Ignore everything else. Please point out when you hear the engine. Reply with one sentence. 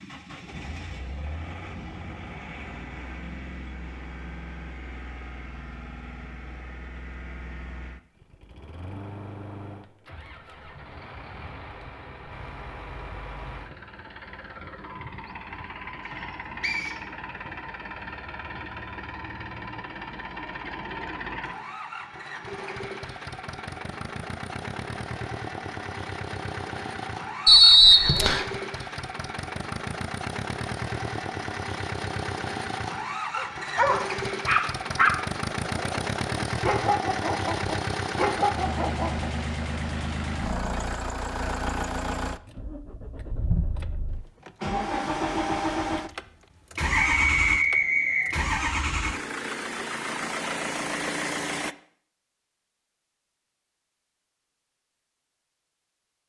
The engine can be heard from 0.0 to 51.8 s.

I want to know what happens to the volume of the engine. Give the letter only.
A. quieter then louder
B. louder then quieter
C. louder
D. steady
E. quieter
C.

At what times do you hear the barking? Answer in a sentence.
You can hear the barking from 33.3 to 39.3 s.